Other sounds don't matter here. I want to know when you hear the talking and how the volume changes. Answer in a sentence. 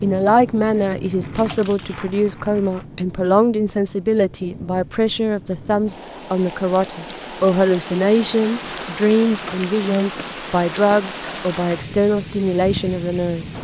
You can hear the talking from 0.0 to 13.6 s, at a steady volume.